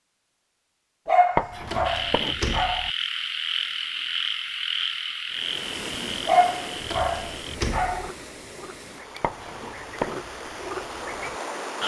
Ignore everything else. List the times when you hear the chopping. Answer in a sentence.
The chopping can be heard from 1.4 to 2.4 s and from 9.2 to 10.3 s.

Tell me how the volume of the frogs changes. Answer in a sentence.
The loudness of the frogs goes down, then up.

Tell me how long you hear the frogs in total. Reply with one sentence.
You can hear the frogs for 10 seconds altogether.